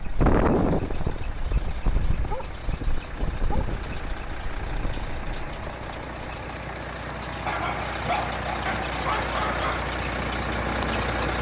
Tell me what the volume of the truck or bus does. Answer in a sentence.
The loudness of the truck or bus goes up.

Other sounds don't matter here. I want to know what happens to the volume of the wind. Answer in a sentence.
The loudness of the wind goes down.